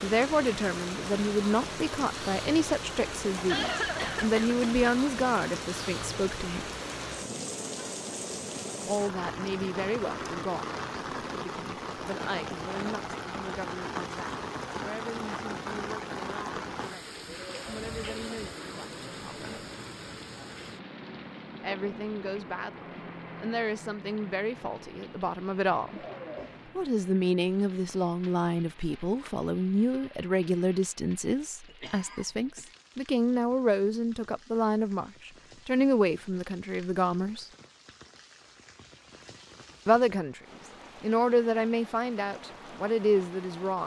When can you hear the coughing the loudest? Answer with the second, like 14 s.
4 s.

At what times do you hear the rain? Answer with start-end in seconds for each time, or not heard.
0.0-43.8.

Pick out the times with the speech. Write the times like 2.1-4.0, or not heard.
0.0-6.7, 8.8-19.6, 21.6-26.0, 26.8-37.5, 39.9-40.4, 41.0-43.8.